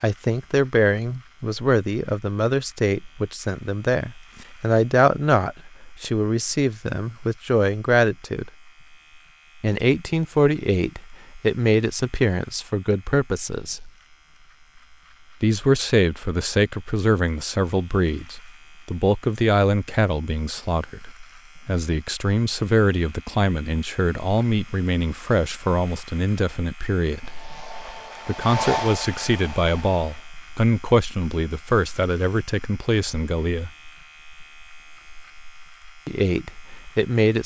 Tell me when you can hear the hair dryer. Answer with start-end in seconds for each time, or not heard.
27.1-30.3.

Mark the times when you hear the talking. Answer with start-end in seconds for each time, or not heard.
0.0-8.4, 9.6-13.9, 15.4-27.3, 28.2-33.7, 36.0-37.4.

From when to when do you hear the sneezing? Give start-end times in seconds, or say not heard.
not heard.